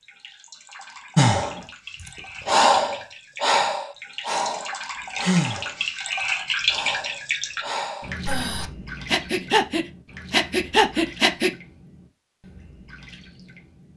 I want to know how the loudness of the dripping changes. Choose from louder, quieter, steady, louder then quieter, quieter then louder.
louder then quieter.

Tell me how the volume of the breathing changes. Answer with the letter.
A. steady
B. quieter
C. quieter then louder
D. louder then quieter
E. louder
C.